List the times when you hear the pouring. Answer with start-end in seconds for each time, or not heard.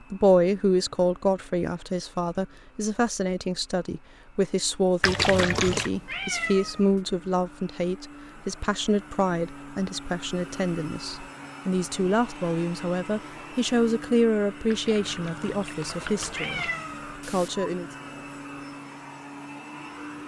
5.0-5.9, 14.7-16.7.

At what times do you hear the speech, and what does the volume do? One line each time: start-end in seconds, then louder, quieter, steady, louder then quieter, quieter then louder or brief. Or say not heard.
0.1-17.9 steady.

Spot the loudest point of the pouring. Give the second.
5 s.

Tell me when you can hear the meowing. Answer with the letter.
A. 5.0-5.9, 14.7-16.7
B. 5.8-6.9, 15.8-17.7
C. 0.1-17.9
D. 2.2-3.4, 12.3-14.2
B.